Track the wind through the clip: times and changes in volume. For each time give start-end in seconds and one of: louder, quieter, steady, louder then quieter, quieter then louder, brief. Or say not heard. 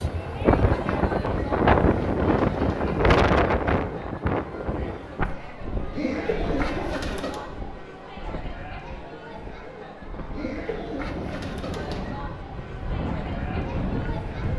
0.0-14.5 quieter then louder.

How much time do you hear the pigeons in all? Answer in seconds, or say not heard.
5 s.